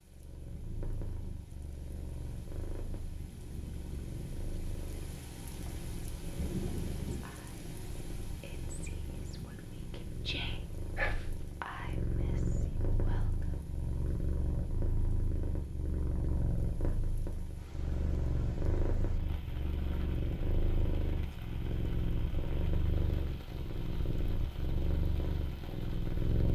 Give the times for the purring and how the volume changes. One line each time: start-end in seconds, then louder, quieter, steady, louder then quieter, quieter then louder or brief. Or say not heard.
0.0-26.5 louder.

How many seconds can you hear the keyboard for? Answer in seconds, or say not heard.
not heard.